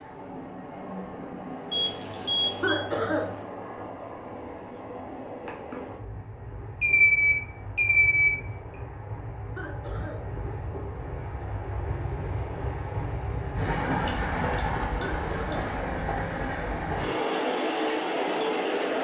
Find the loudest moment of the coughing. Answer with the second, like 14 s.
3 s.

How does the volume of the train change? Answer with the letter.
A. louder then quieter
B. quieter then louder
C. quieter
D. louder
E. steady
D.